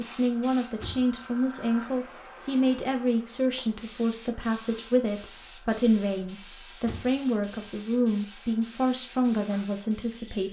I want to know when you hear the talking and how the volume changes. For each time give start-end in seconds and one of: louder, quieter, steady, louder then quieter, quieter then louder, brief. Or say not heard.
0.0-10.4 steady.